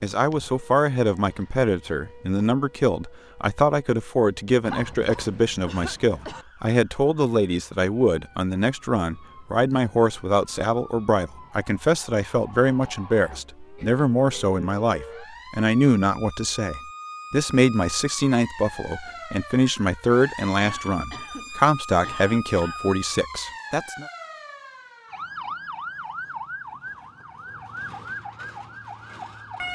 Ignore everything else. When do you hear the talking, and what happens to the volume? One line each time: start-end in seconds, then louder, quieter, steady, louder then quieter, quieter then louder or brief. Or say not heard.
0.0-24.1 steady.